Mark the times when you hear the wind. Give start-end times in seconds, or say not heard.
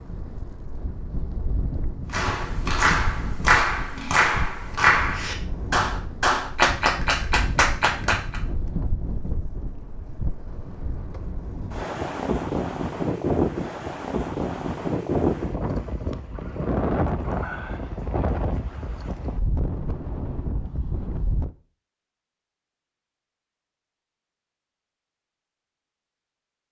0.0-21.5.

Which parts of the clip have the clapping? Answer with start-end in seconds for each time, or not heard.
2.1-8.4.